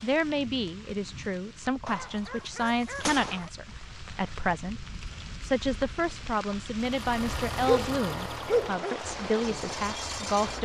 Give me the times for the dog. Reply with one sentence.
You can hear the dog from 1.9 to 3.5 s and from 7.7 to 9.1 s.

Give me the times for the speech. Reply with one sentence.
You can hear the speech from 0.0 to 10.6 s.